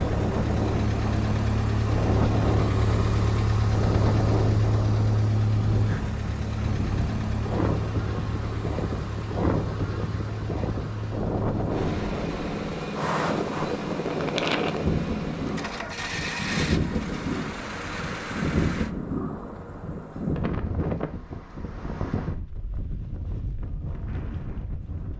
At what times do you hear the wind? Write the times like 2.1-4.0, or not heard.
0.0-25.1.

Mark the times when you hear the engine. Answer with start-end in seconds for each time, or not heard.
0.0-18.9.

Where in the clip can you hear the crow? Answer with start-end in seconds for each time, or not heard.
not heard.